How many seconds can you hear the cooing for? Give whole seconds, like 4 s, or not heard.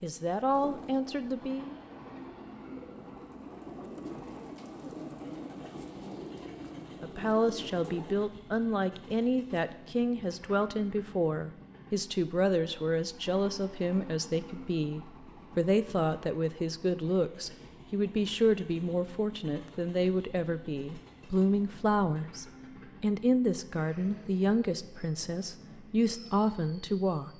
8 s.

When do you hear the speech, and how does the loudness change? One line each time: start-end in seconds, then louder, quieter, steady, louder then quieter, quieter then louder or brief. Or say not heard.
0.0-1.8 brief
7.0-27.3 steady.